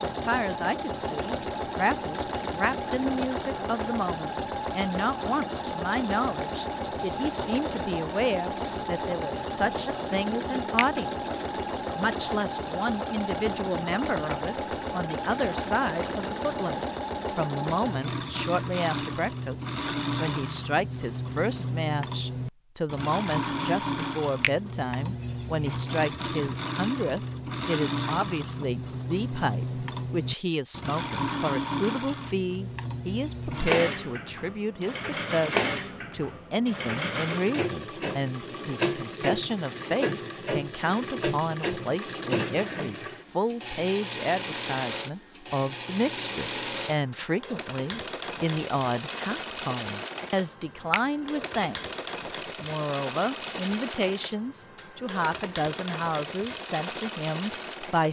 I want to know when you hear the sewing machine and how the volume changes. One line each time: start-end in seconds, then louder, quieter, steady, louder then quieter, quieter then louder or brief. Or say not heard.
0.0-58.0 steady.